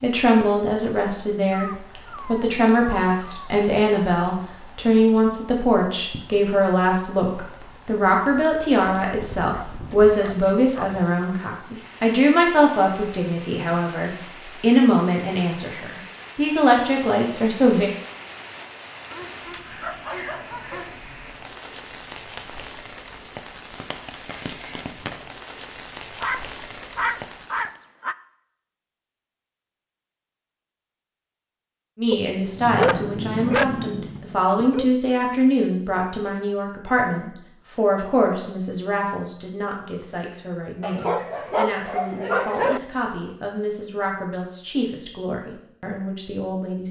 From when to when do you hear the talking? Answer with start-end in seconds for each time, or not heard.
0.0-17.9, 31.9-46.8.